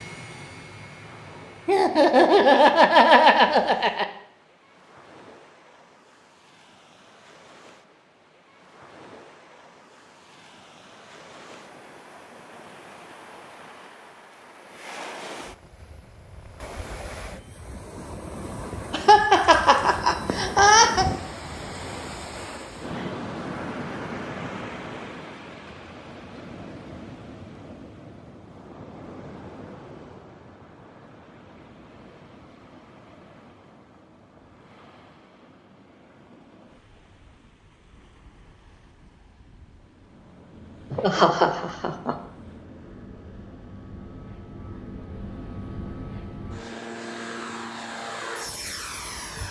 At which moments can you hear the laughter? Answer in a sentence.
The laughter can be heard from 1.6 to 4.0 s, from 18.9 to 21.1 s and from 40.9 to 42.1 s.